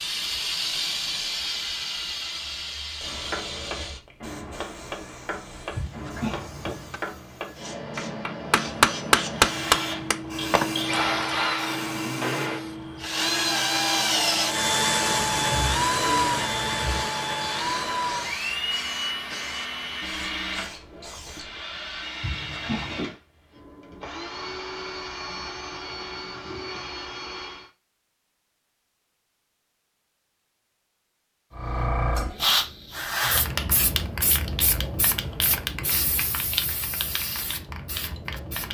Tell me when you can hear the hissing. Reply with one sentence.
You can hear the hissing from 0.0 to 21.6 s and from 31.5 to 38.6 s.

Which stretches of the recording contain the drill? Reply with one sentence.
You can hear the drill from 9.3 to 27.7 s.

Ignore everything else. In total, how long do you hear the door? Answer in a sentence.
The door can be heard for 2 seconds in total.